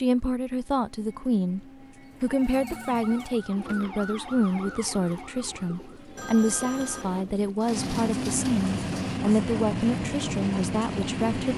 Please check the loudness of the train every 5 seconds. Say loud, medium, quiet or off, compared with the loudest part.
quiet, loud, loud.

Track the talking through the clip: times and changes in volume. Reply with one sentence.
The talking can be heard briefly from 0.0 to 1.6 s; and from 2.2 to 11.5 s, at a steady volume.